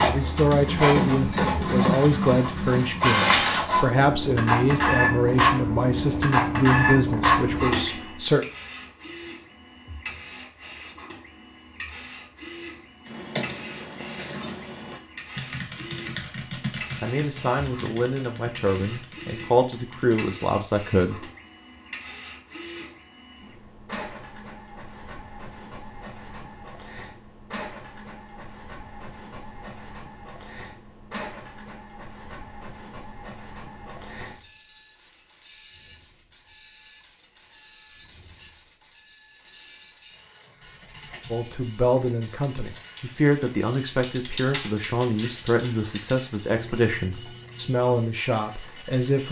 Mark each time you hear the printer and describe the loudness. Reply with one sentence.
You can hear the printer from 0.0 to 49.2 s, getting quieter.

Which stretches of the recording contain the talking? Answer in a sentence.
You can hear the talking from 0.0 to 8.4 s, from 17.0 to 21.2 s and from 41.3 to 49.2 s.